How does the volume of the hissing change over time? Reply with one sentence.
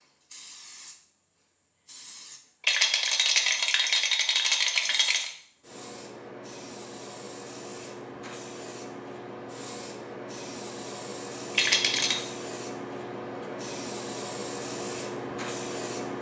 The volume of the hissing goes up.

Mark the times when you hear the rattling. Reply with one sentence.
The rattling can be heard from 2.6 to 5.3 s and from 11.6 to 12.2 s.